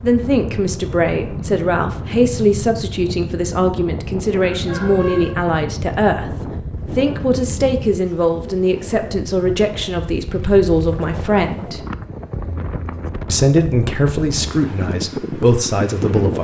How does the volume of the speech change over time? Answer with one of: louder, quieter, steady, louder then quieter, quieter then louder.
steady.